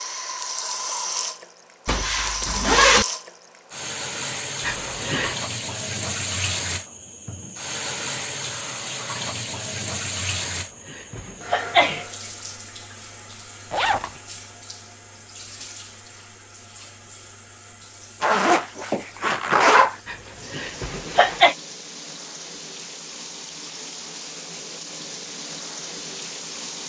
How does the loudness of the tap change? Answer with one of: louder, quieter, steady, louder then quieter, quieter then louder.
quieter then louder.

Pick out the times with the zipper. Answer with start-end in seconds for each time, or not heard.
1.9-3.0, 13.7-14.1, 18.2-19.9.